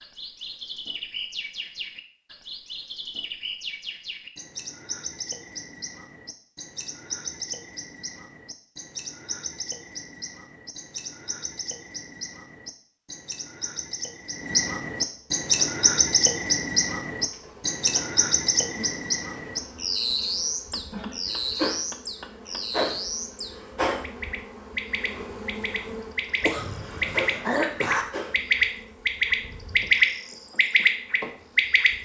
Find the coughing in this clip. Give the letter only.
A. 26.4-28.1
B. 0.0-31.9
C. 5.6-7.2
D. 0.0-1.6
A.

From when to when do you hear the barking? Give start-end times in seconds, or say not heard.
not heard.